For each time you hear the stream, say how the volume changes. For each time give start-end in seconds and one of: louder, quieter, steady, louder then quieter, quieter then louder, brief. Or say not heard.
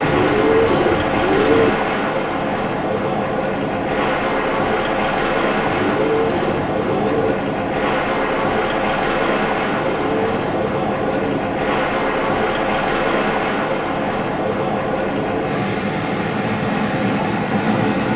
0.0-18.1 steady.